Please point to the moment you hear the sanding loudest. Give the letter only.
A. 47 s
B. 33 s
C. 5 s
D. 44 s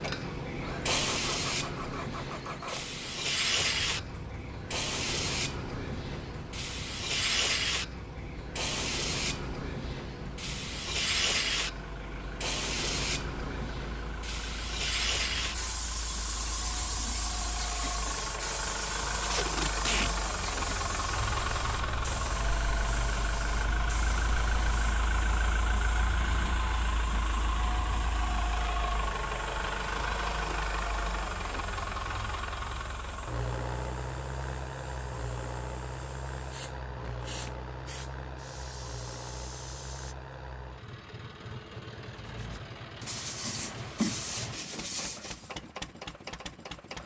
D.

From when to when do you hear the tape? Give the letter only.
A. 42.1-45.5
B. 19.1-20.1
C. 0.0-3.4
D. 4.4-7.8
B.